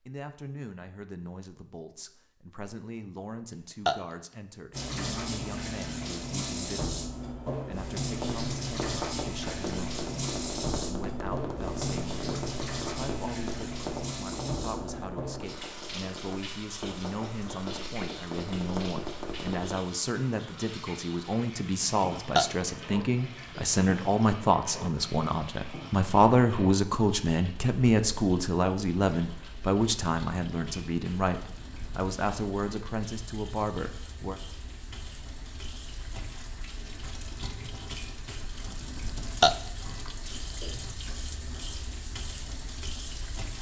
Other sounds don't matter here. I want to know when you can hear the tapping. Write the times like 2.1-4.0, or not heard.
8.1-19.8.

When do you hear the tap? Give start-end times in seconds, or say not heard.
4.7-43.5.